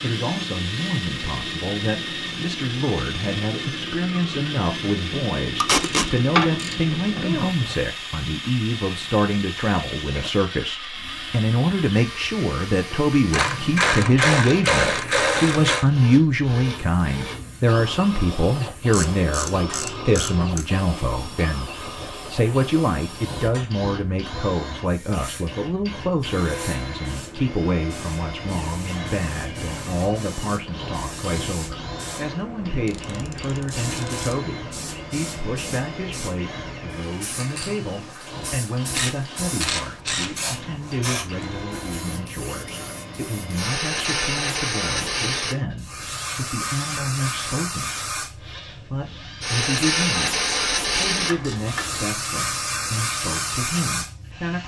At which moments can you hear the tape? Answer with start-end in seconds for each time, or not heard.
5.6-6.1.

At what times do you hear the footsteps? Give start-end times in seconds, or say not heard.
not heard.